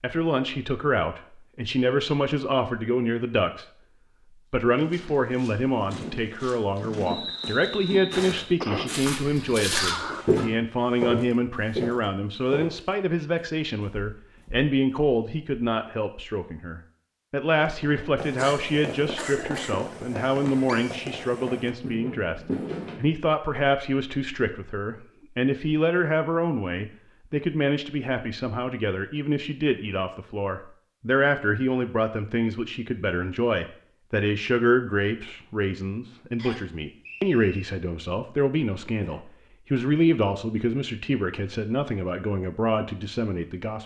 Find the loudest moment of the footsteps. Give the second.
10 s.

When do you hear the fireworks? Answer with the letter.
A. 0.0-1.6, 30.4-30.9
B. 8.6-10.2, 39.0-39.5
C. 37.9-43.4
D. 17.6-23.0
D.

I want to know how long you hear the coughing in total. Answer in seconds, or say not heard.
2 s.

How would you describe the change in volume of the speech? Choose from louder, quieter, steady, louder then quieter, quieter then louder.
steady.